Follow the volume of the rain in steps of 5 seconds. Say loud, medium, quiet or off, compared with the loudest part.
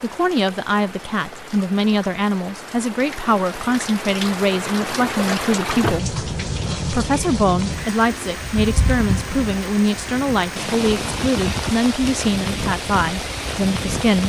medium, loud, loud.